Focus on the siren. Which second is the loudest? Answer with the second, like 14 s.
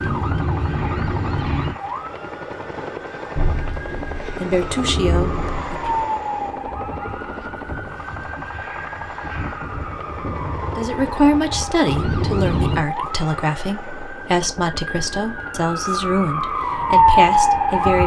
17 s.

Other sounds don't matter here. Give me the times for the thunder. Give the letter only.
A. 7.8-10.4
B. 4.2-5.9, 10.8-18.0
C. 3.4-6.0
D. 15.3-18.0
C.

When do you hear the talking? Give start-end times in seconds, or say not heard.
4.2-5.9, 10.8-18.0.